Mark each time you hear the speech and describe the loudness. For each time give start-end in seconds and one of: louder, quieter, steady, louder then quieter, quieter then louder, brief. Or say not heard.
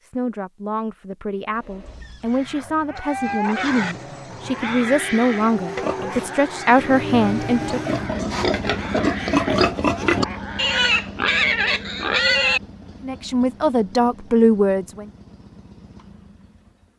0.0-7.8 louder
13.0-15.1 brief.